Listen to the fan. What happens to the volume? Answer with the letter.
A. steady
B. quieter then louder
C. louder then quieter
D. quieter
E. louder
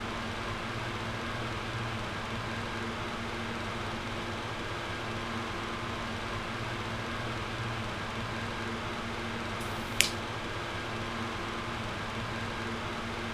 A.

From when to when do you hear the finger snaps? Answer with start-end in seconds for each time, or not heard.
9.6-10.2.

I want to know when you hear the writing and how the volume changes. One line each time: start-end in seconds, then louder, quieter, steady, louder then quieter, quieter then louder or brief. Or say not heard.
not heard.